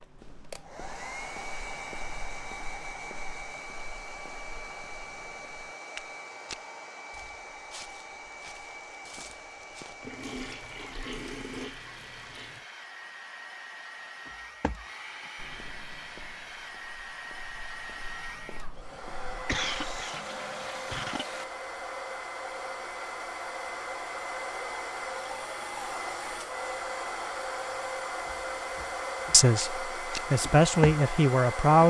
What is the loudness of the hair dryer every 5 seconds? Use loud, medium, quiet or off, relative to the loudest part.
medium, medium, medium, medium, loud, loud, loud.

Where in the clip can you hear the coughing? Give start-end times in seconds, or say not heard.
19.3-21.2.